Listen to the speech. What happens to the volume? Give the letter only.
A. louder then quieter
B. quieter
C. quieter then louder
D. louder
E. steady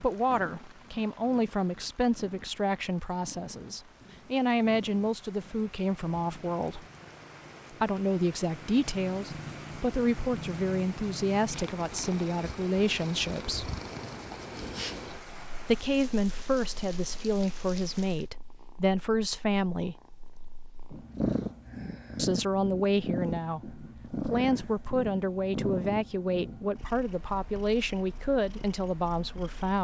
E.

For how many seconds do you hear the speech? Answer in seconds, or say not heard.
25 s.